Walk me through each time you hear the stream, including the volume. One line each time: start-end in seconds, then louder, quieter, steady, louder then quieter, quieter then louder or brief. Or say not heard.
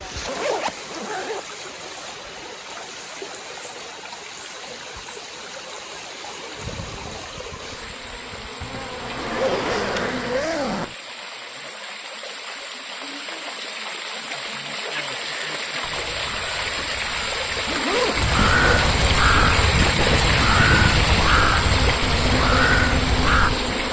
0.0-23.8 louder.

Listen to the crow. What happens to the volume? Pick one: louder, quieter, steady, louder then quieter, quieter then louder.
louder.